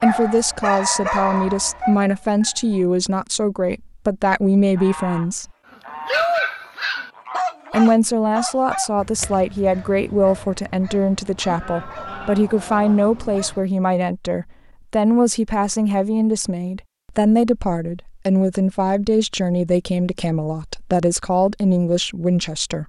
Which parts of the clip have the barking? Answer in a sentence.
You can hear the barking from 0.0 to 2.9 s and from 6.0 to 13.7 s.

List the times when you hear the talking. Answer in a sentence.
You can hear the talking from 0.0 to 5.5 s and from 7.7 to 22.8 s.